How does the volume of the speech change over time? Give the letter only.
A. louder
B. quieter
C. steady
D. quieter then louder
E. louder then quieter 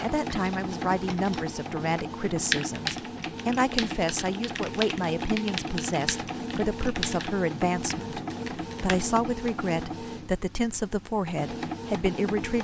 C.